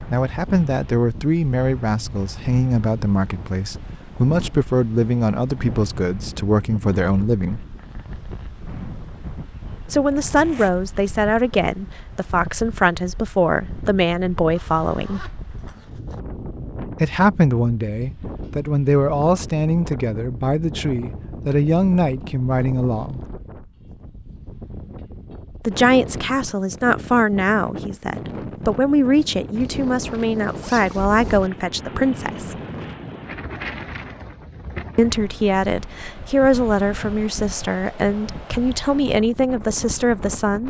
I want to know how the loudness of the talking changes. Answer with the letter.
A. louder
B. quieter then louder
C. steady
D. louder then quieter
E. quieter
C.